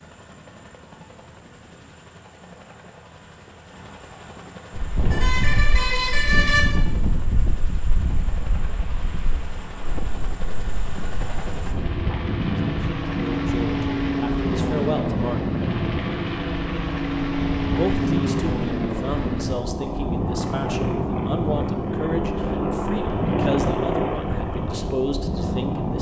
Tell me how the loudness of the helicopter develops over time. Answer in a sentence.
The loudness of the helicopter goes up.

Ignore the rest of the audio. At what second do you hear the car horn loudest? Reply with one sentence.
The loudest moment of the car horn is at 6 seconds.